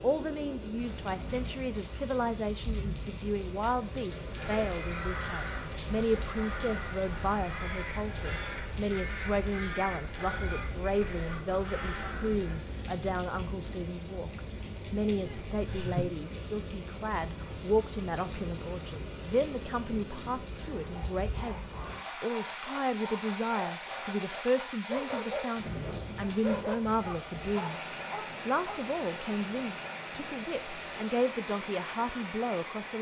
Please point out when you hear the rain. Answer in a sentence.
The rain can be heard from 0.0 to 32.9 s.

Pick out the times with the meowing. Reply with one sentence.
You can hear the meowing from 15.2 to 16.1 s.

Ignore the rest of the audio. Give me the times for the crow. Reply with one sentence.
You can hear the crow from 4.2 to 12.7 s.